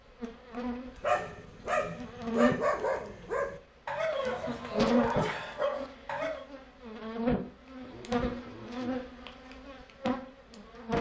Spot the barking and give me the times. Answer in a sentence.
You can hear the barking from 0.9 to 6.5 s.